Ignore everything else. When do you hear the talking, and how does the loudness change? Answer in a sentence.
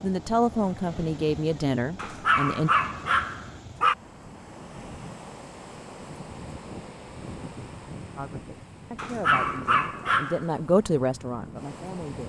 The talking can be heard briefly from 0.0 to 2.7 s; and from 8.2 to 12.2 s, getting louder then quieter.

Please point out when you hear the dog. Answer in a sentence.
The dog can be heard from 1.9 to 4.0 s and from 8.9 to 10.4 s.